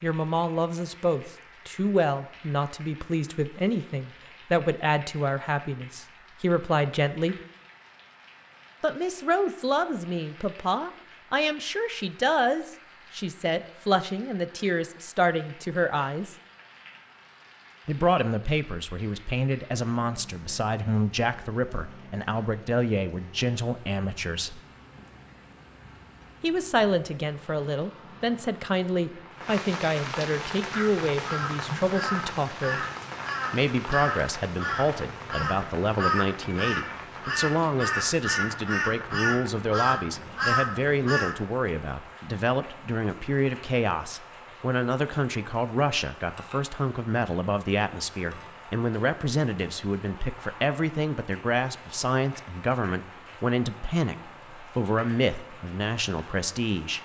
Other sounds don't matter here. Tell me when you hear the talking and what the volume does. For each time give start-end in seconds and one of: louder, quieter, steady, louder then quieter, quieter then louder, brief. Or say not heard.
0.0-7.3 steady
8.8-16.4 steady
17.9-24.6 steady
26.4-32.9 steady
33.5-57.0 steady.